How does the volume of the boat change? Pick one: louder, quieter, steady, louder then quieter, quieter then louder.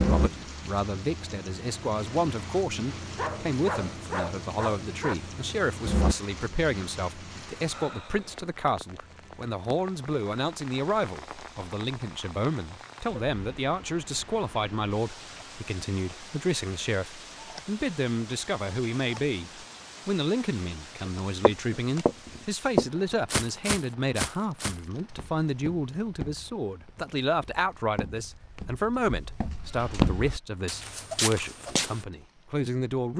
louder.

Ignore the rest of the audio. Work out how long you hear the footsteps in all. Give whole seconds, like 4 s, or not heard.
11 s.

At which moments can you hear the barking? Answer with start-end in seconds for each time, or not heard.
3.1-5.2.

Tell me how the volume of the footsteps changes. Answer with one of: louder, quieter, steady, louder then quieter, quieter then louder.
quieter then louder.